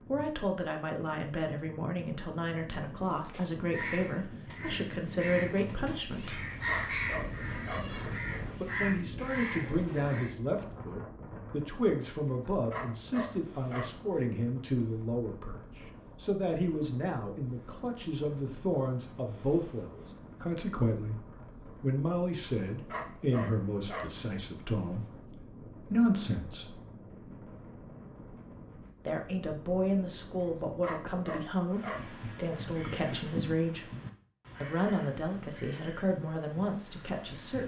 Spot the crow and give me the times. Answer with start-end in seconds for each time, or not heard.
3.0-10.3, 31.7-37.6.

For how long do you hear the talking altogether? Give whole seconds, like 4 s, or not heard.
32 s.